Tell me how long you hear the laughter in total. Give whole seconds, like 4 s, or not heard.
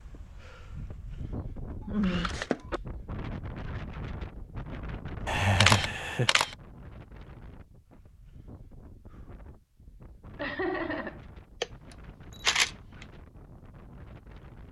3 s.